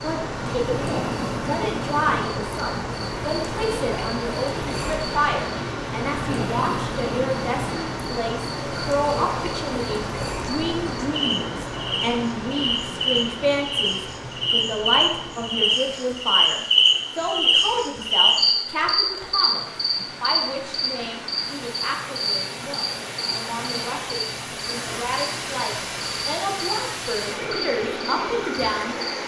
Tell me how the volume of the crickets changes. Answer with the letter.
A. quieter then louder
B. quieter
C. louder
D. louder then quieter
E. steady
D.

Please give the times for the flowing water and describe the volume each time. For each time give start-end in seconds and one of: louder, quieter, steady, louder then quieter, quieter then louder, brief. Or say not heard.
0.0-29.2 quieter then louder.